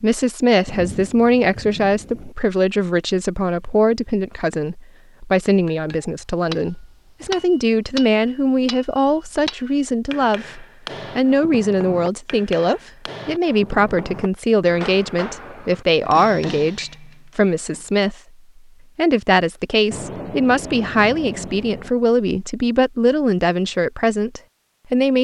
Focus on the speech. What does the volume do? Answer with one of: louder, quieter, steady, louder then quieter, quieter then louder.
steady.